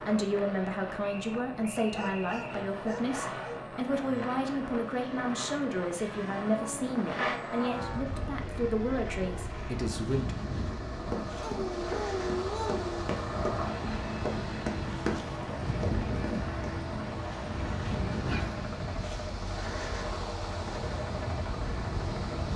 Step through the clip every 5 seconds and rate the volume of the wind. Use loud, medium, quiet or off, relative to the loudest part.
medium, medium, loud, loud, loud.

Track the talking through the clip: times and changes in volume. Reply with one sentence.
You can hear the talking from 0.1 to 10.3 s, at a steady volume.